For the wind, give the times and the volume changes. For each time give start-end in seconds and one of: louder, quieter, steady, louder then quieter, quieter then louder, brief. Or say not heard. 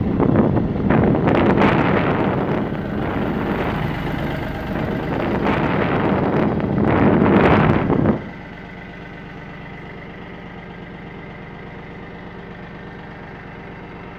0.0-8.2 quieter then louder.